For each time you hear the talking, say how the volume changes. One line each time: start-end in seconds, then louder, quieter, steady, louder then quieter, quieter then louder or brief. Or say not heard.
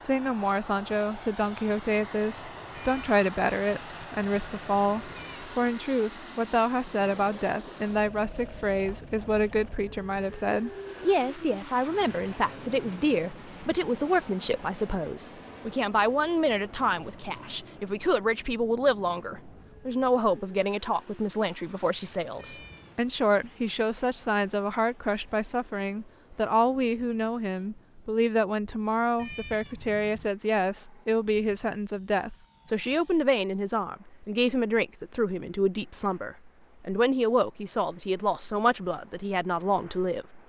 0.0-40.2 steady.